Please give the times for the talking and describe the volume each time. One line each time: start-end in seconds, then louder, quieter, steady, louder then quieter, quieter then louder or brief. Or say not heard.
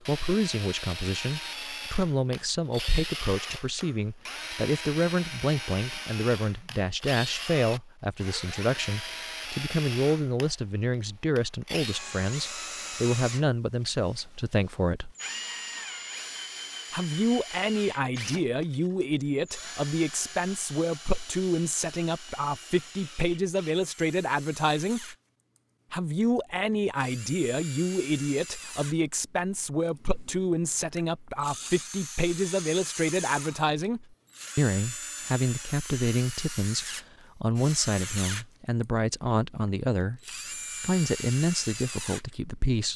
0.1-15.2 steady
16.9-25.1 steady
25.9-42.9 steady.